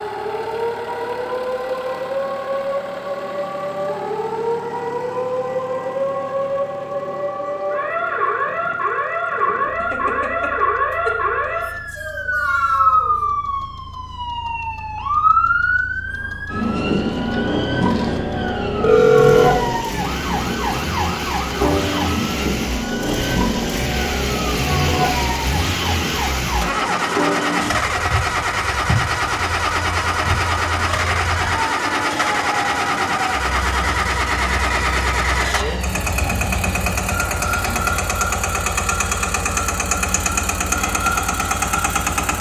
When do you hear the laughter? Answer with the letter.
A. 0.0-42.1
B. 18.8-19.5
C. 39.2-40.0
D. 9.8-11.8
D.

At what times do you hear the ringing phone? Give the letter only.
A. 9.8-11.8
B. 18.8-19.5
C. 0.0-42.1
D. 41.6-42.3
B.